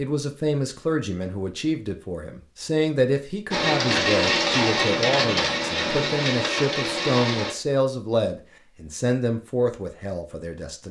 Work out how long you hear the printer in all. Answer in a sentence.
You can hear the printer for 4 seconds altogether.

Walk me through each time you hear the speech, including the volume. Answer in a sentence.
The speech can be heard from 0.0 to 10.8 s, at a steady volume.